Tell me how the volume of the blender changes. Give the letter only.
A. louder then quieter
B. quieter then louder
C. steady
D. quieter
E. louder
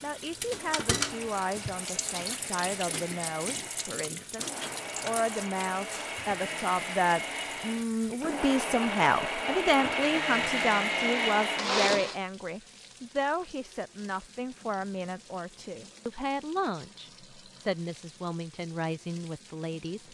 E.